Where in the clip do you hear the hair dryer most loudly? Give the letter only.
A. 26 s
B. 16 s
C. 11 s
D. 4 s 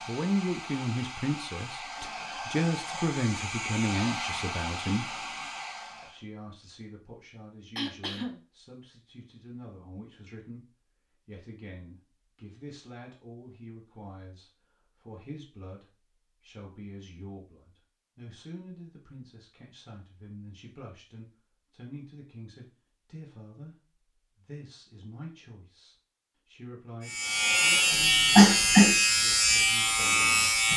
D.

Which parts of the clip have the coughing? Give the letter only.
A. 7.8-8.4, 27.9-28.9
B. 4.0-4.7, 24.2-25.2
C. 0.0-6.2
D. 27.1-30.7
A.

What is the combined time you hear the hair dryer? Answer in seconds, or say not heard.
6 s.